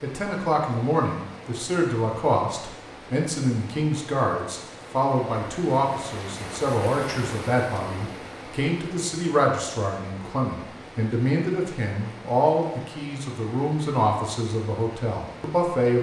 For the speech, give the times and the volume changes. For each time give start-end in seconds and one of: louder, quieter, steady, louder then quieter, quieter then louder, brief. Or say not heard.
0.0-15.9 steady.